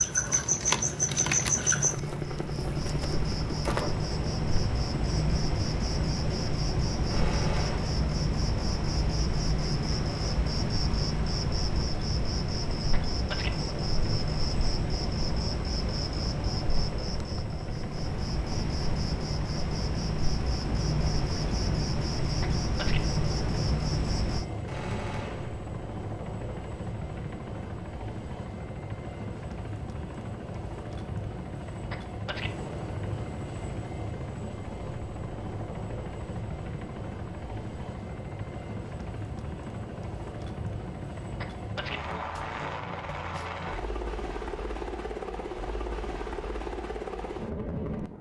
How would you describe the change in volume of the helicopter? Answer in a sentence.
The loudness of the helicopter stays about the same.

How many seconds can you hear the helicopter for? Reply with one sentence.
The helicopter can be heard for 48 seconds in total.